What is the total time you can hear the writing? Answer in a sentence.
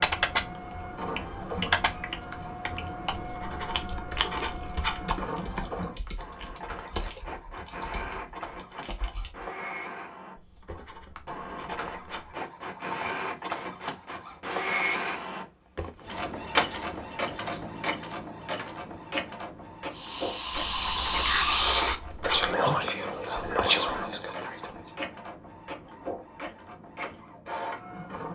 You can hear the writing for 6 seconds altogether.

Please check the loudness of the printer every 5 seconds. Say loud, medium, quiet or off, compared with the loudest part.
medium, medium, loud, loud, medium, medium.